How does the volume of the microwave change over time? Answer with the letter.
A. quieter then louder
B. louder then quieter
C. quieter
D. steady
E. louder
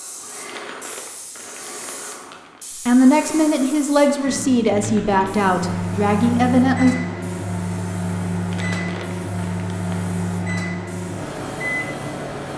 D.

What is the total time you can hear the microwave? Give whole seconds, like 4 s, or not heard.
8 s.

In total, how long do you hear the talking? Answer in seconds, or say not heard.
4 s.